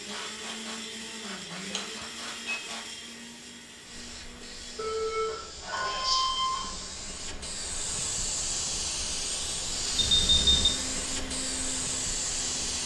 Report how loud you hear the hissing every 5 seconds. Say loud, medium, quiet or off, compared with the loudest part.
quiet, loud, loud.